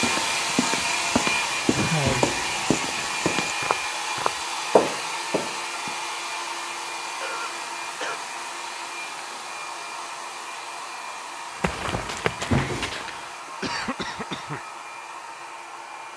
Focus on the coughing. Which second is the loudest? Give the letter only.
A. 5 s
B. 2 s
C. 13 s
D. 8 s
B.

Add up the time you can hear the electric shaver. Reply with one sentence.
The electric shaver can't be heard in this clip.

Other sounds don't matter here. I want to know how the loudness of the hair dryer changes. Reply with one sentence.
The volume of the hair dryer goes down.